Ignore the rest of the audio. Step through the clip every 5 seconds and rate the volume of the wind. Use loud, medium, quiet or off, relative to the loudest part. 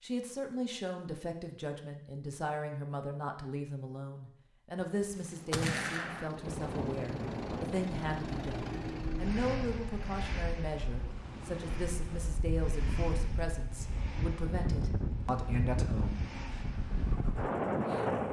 off, medium, medium, loud.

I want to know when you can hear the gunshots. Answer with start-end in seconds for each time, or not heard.
4.8-6.3.